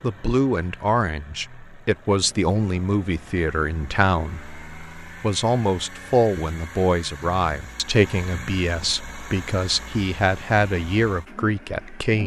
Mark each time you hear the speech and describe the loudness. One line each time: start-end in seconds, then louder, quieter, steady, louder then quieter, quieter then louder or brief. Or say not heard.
0.0-12.2 steady.